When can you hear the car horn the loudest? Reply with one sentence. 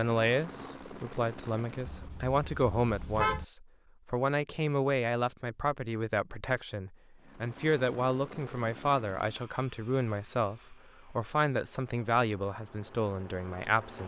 The loudest moment of the car horn is at 3 seconds.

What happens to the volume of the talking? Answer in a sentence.
The loudness of the talking stays about the same.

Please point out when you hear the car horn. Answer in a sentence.
The car horn can be heard from 1.9 to 3.5 s.